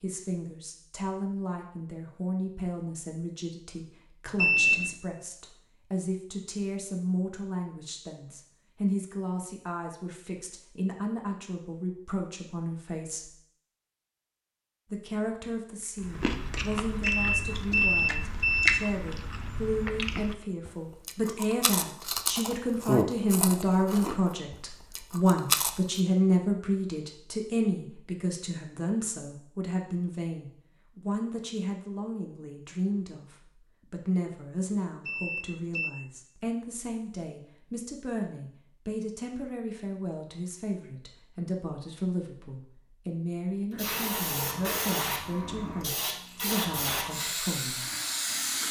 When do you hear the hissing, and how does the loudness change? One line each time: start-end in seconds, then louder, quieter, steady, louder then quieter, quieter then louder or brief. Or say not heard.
43.7-48.6 steady.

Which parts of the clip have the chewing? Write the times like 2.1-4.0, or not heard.
16.0-26.0.